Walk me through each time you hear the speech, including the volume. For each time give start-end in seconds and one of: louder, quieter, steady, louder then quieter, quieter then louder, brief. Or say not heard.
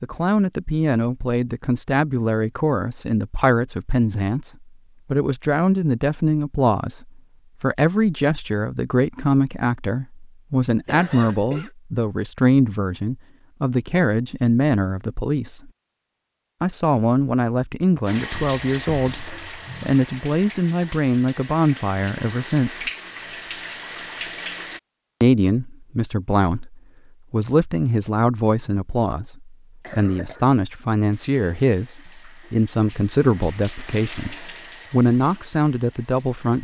0.0-15.7 steady
16.6-22.9 steady
25.2-36.6 steady.